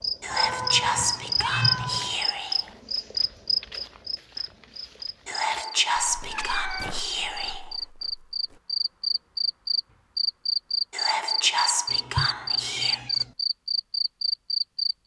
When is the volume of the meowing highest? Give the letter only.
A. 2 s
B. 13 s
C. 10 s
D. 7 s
A.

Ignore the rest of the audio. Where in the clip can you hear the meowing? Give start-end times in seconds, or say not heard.
0.3-2.1, 6.2-6.9, 11.9-13.3.